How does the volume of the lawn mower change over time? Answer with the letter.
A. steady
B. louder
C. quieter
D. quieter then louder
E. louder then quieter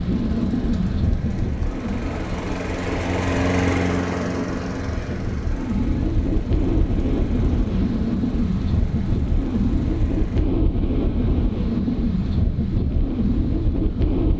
E.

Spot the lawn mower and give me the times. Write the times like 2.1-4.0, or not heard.
0.0-10.4.